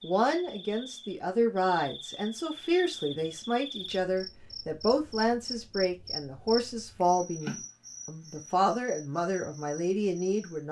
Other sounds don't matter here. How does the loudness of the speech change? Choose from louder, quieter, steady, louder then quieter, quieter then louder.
steady.